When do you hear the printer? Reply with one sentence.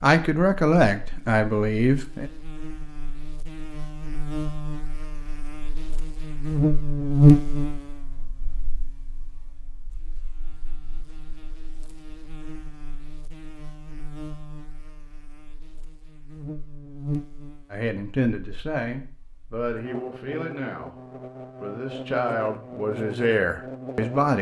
You can't hear the printer here.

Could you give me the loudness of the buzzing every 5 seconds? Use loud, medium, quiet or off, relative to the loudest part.
quiet, loud, quiet, quiet, quiet.